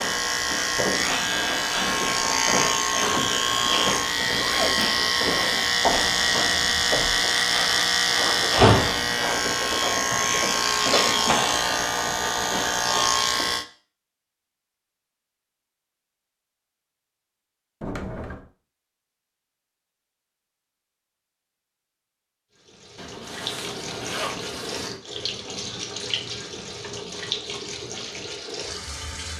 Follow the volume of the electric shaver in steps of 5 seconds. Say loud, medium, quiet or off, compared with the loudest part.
loud, loud, loud, off, off, off.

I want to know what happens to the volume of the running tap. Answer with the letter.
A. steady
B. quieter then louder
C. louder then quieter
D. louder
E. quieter
A.